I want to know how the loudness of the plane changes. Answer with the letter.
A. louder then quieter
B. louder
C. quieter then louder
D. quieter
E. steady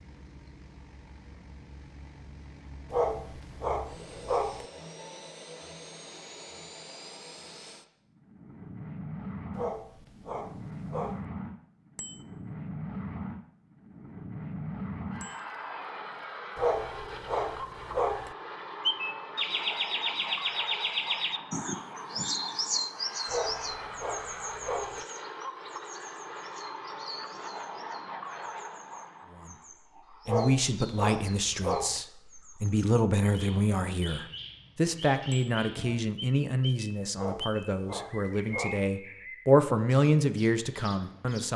B.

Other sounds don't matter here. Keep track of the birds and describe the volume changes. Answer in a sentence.
The loudness of the birds goes down, then up.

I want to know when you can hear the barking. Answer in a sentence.
The barking can be heard from 2.9 to 4.7 s, from 9.6 to 11.2 s, from 16.6 to 18.4 s, from 23.2 to 25.1 s, from 30.2 to 32.0 s and from 37.1 to 38.9 s.